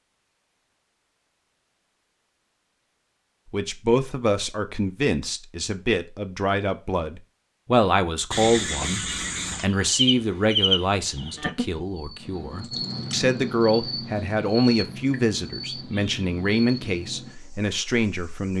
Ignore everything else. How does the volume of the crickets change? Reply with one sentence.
The loudness of the crickets goes down.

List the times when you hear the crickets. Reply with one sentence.
The crickets can be heard from 8.3 to 18.5 s.